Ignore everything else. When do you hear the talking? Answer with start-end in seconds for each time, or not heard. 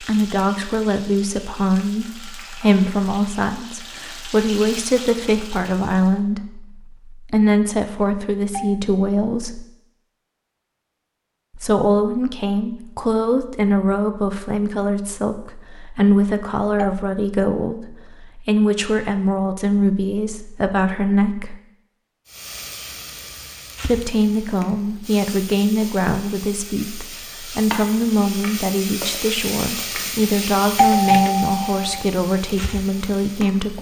0.0-9.7, 11.6-21.6, 23.8-33.7.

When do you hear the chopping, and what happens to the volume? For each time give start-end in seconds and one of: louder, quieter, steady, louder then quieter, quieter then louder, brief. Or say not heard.
not heard.